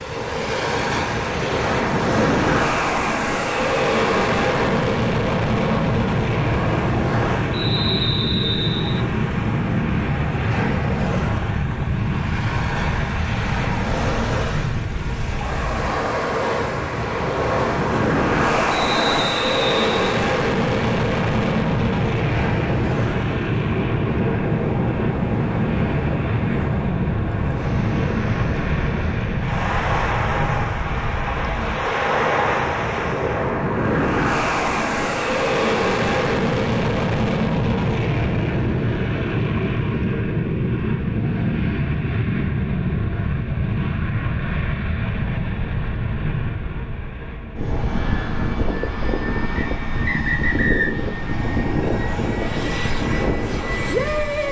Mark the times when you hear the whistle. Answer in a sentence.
You can hear the whistle from 7.5 to 9.1 s, from 18.7 to 20.1 s and from 49.5 to 51.0 s.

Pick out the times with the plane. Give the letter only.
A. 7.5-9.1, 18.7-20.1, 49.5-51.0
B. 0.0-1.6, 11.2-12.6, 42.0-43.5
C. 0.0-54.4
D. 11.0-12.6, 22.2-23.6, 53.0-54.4
C.